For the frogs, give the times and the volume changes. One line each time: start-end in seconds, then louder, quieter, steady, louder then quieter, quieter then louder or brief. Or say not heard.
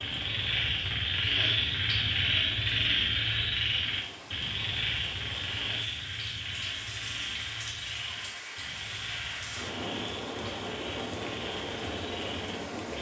0.0-12.9 quieter.